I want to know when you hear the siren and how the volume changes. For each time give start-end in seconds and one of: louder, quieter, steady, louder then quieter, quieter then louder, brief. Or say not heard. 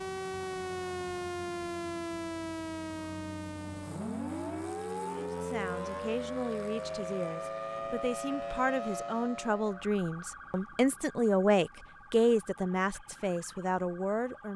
0.0-14.5 quieter.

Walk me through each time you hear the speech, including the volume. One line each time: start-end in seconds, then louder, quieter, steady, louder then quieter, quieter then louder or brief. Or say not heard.
5.1-14.5 louder then quieter.